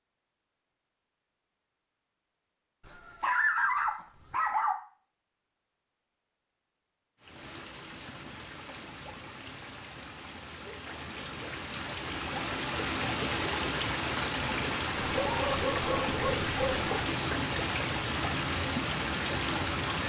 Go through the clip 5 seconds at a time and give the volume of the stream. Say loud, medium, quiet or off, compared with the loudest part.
off, quiet, loud, loud.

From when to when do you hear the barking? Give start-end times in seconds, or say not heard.
2.9-4.8, 15.2-16.9.